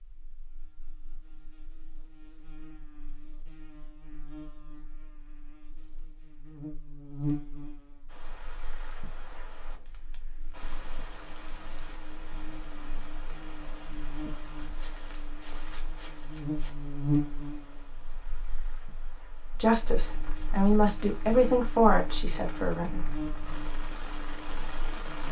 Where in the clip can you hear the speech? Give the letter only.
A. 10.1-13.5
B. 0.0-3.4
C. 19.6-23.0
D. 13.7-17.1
C.